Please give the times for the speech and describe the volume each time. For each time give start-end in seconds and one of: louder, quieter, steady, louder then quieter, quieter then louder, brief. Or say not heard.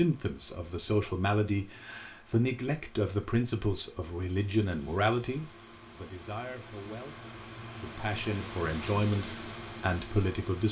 0.0-10.6 quieter then louder.